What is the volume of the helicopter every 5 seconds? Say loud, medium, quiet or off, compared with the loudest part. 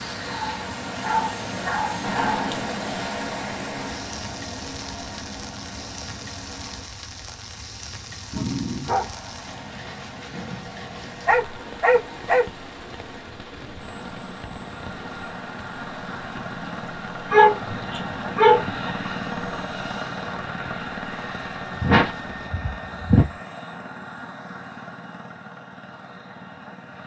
loud, medium, medium, loud, loud, medium.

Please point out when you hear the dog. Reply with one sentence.
The dog can be heard from 0.2 to 2.5 s, from 8.3 to 9.2 s, from 11.2 to 12.4 s, from 17.3 to 18.9 s and from 21.8 to 23.3 s.